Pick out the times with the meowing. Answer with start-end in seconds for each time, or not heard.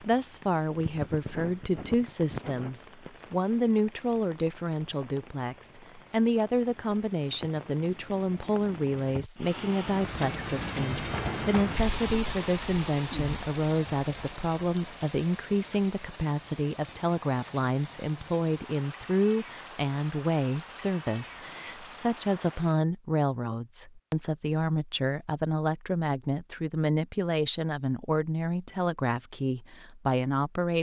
not heard.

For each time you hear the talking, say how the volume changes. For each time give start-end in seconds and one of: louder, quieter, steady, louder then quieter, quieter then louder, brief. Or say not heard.
0.0-30.7 steady.